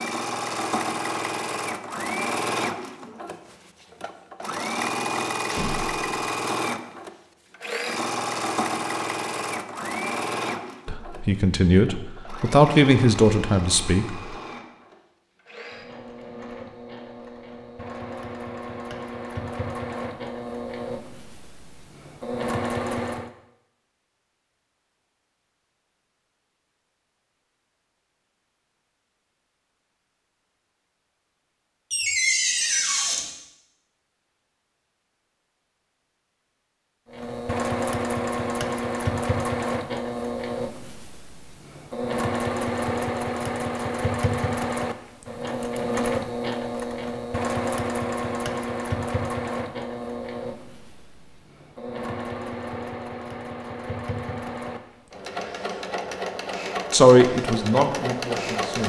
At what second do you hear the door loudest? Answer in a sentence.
The loudest moment of the door is at 32 seconds.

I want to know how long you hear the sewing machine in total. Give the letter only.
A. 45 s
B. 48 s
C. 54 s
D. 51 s
A.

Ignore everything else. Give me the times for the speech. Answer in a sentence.
The speech can be heard from 10.8 to 14.1 s and from 56.9 to 58.8 s.